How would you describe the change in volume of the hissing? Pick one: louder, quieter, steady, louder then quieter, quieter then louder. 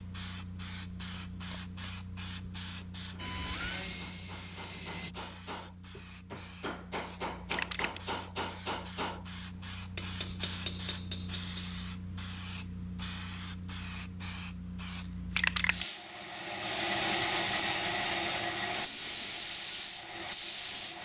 louder.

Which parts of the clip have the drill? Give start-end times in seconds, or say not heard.
3.1-5.2.